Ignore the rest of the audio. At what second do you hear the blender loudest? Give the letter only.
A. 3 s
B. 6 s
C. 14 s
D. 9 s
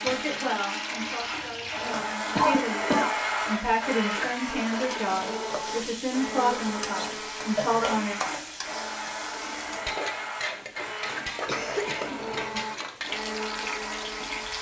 A.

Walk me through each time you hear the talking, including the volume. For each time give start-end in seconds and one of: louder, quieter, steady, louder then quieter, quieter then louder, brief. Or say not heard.
0.0-8.2 louder.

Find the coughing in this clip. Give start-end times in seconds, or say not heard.
2.4-3.1, 6.5-8.1, 11.4-12.7.